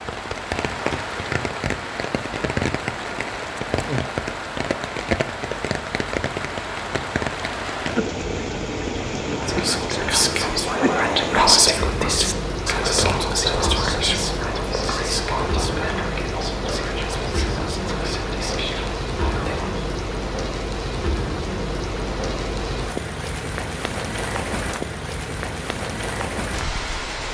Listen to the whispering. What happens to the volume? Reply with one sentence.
The loudness of the whispering goes down.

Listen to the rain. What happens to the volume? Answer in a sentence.
The volume of the rain stays about the same.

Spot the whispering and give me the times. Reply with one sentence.
The whispering can be heard from 9.2 to 19.9 s.